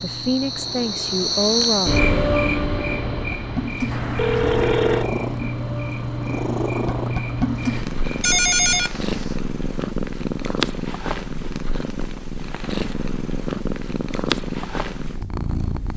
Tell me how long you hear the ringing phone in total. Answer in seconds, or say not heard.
2 s.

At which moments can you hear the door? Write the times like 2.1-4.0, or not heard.
not heard.